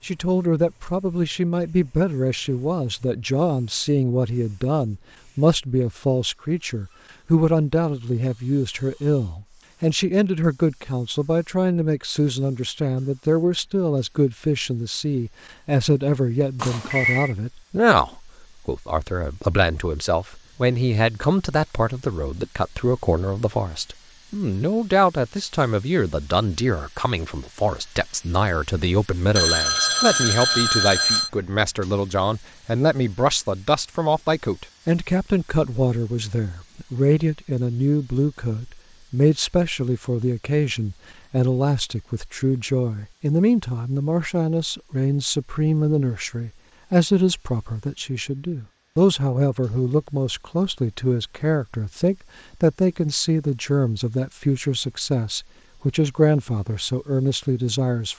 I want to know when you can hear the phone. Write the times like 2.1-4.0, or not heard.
16.6-17.4, 29.4-31.3.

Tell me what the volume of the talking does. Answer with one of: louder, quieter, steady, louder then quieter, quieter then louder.
steady.